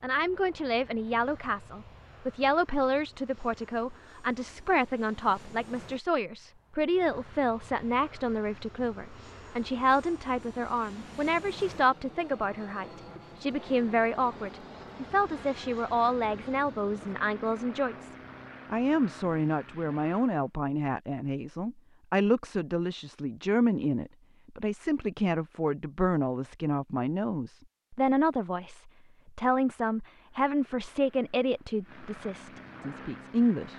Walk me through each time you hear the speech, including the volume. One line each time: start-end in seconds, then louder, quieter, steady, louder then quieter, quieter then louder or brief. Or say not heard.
0.0-33.7 steady.